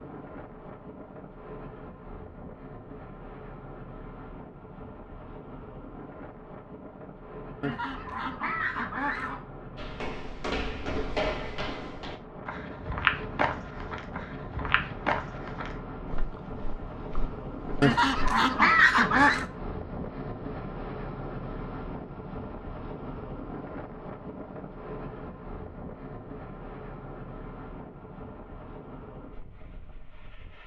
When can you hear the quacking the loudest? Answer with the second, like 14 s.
19 s.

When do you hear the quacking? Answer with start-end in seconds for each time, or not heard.
7.6-9.4, 17.8-19.4.